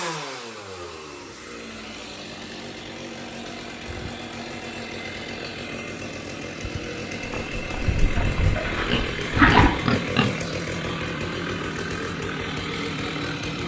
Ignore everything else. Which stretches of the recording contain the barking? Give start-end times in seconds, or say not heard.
not heard.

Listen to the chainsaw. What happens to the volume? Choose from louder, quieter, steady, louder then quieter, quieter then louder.
louder.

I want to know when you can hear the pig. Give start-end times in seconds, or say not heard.
7.2-10.3.